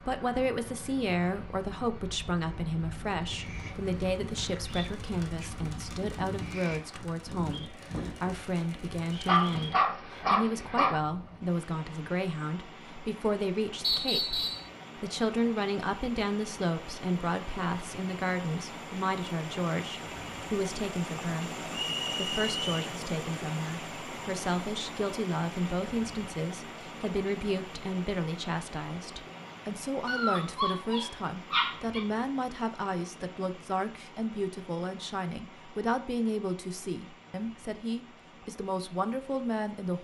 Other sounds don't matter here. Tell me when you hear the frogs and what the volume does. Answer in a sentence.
The frogs can't be heard in this clip.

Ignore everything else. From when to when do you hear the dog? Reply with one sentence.
The dog can be heard from 9.2 to 10.9 s and from 30.1 to 32.0 s.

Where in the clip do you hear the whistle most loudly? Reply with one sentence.
The volume of the whistle peaks at 14 seconds.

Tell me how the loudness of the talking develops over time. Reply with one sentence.
The loudness of the talking stays about the same.